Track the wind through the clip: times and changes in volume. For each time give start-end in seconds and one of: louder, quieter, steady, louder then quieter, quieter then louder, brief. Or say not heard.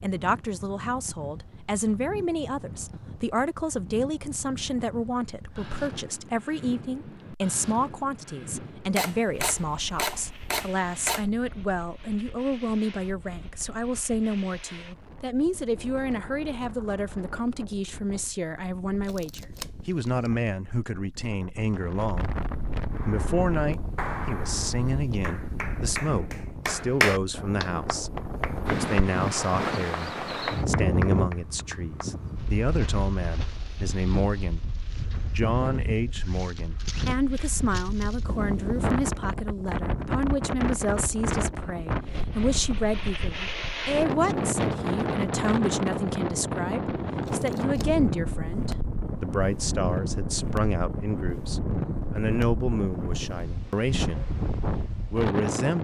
0.0-55.7 louder.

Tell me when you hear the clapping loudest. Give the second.
27 s.